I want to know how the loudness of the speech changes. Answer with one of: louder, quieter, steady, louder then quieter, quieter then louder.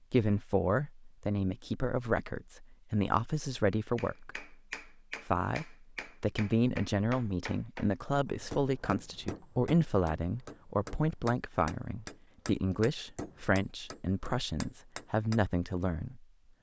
steady.